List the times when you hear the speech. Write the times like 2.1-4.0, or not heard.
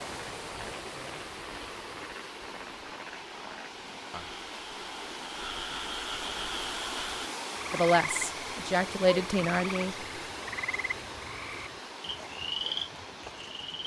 7.7-10.1.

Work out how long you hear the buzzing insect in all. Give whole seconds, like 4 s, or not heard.
not heard.